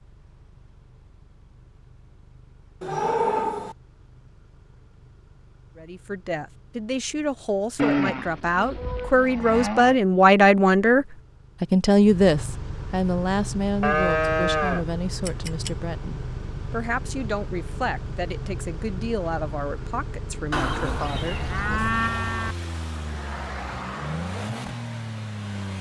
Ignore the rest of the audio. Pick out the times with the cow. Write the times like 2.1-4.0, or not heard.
2.8-3.8, 7.8-9.9, 13.8-15.7, 20.5-22.6.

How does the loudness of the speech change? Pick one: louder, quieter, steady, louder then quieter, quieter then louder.
louder then quieter.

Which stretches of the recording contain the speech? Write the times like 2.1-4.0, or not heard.
5.8-21.9.